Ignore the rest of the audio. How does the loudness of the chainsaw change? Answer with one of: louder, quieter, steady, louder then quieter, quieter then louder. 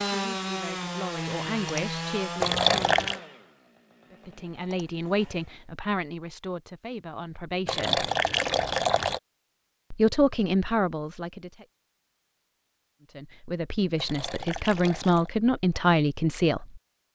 quieter.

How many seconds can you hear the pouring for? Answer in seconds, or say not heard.
4 s.